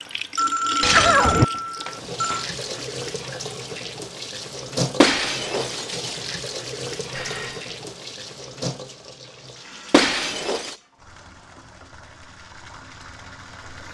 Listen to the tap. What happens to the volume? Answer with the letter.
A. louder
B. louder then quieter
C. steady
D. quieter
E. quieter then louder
D.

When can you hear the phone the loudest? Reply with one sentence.
The volume of the phone peaks at 1 second.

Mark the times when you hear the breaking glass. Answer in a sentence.
The breaking glass can be heard from 0.8 to 2.4 s, from 5.0 to 6.2 s and from 9.9 to 10.8 s.